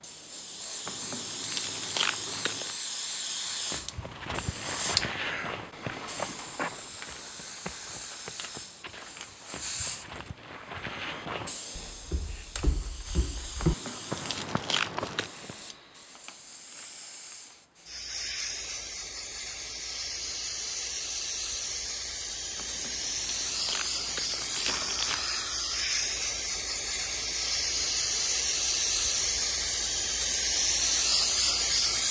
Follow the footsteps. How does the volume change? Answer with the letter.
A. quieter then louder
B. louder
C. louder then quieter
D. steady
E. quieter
A.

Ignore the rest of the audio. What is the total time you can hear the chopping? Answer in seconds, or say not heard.
not heard.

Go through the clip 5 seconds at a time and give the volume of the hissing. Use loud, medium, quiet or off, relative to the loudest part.
medium, quiet, quiet, quiet, medium, loud, loud.